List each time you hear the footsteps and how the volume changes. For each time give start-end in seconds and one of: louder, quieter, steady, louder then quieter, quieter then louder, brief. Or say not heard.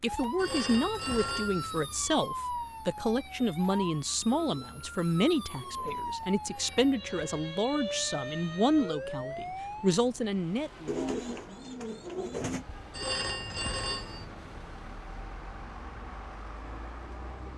not heard.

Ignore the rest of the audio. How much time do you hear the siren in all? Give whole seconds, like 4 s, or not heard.
10 s.